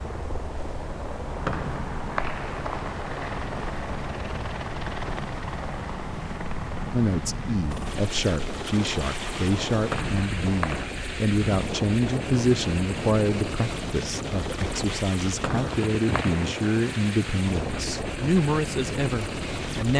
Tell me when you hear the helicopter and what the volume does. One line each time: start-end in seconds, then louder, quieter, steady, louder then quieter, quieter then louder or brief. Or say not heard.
0.0-19.9 steady.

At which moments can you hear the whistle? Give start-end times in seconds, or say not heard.
1.4-3.0, 9.9-10.9, 15.4-16.4.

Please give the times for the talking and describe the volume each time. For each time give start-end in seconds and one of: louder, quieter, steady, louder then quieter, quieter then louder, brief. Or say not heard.
6.9-19.9 steady.